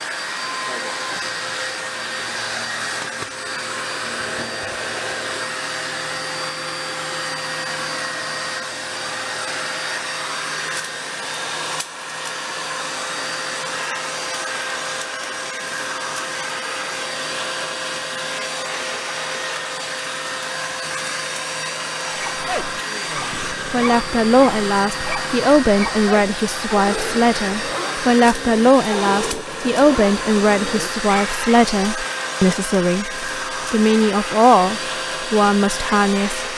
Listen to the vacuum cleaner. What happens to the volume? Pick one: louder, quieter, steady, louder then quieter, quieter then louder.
steady.